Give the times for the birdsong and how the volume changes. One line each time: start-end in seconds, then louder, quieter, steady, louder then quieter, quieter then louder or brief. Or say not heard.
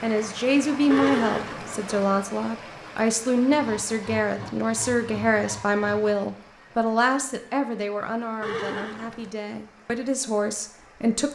not heard.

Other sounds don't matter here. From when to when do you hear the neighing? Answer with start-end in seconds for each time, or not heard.
0.9-2.0, 8.4-9.3.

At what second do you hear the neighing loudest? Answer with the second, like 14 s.
1 s.